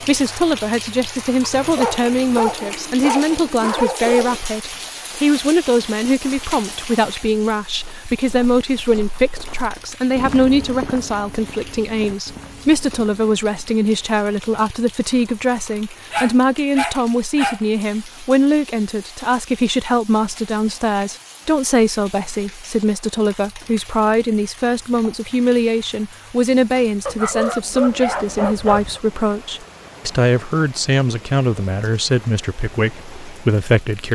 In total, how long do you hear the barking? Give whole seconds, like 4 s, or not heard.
6 s.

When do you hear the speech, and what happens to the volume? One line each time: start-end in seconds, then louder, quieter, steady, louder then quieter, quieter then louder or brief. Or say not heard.
0.0-34.1 steady.